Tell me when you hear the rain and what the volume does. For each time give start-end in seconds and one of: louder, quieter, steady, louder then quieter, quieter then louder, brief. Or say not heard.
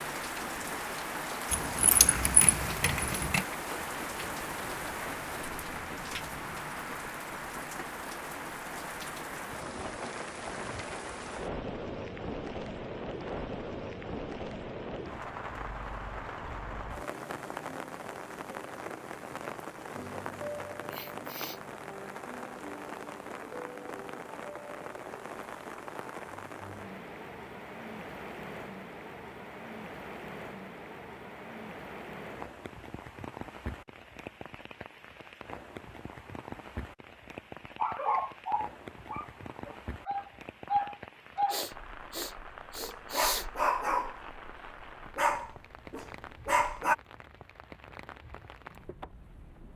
0.0-49.7 quieter.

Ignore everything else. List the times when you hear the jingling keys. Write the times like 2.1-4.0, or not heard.
1.5-3.5.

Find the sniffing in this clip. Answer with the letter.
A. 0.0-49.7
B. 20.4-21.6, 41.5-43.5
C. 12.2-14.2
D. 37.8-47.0
B.